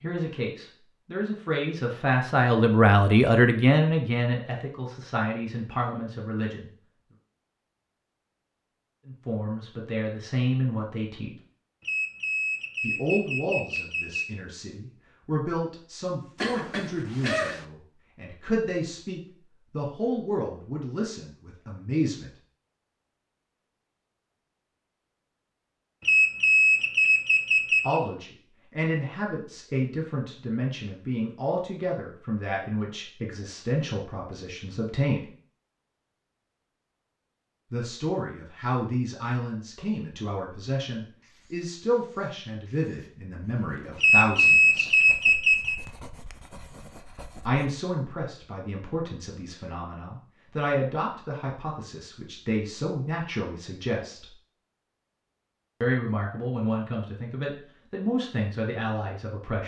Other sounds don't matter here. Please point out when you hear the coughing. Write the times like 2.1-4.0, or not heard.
16.4-17.6.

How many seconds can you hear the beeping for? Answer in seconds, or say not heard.
6 s.